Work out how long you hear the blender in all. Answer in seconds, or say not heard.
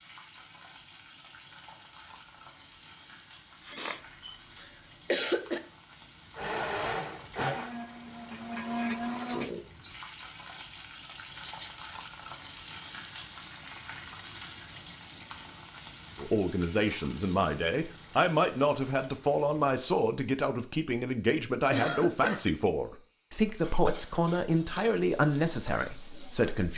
3 s.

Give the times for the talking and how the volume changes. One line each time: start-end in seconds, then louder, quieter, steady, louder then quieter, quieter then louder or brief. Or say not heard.
16.1-26.7 steady.